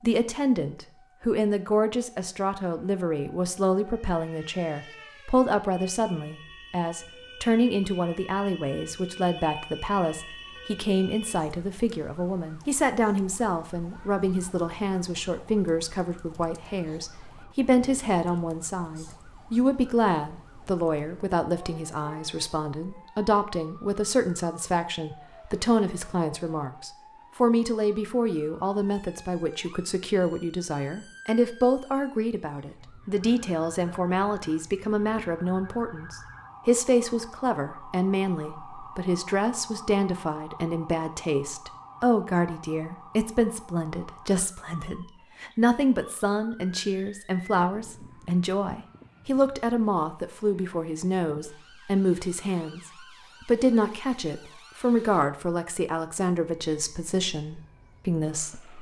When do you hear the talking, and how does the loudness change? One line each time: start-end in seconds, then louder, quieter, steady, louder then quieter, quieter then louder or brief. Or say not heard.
0.0-58.7 steady.